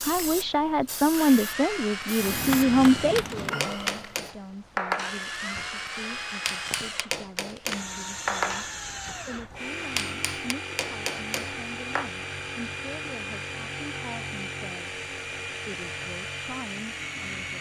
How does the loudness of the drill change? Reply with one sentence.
The volume of the drill stays about the same.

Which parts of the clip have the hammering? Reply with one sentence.
You can hear the hammering from 2.1 to 12.1 s.